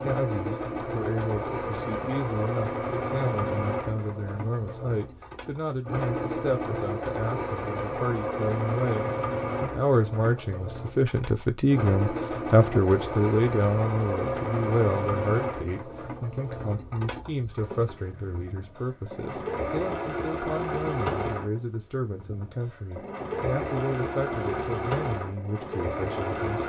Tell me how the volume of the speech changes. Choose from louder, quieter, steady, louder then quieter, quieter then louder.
louder then quieter.